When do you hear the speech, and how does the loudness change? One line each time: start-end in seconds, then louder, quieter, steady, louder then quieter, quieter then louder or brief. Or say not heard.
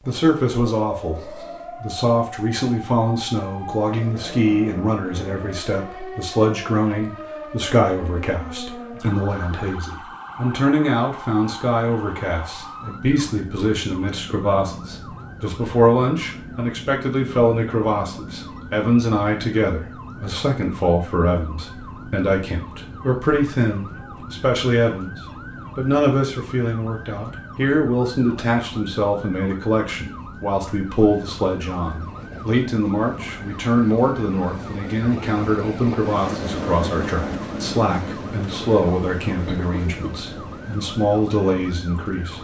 0.1-42.3 steady.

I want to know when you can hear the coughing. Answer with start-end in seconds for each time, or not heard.
39.5-40.2.